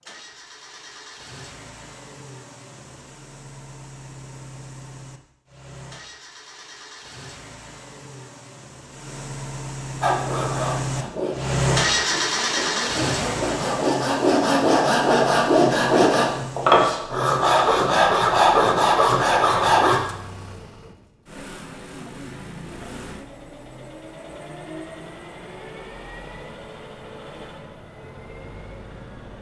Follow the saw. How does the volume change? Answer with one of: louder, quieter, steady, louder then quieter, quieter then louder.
louder.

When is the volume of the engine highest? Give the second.
12 s.